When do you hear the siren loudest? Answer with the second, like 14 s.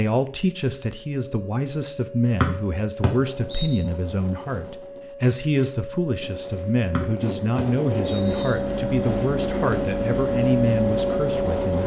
11 s.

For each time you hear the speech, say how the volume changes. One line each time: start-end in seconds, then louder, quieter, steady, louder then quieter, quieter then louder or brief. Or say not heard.
0.0-11.8 steady.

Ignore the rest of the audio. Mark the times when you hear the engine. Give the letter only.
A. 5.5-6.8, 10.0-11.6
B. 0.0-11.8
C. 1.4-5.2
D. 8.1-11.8
D.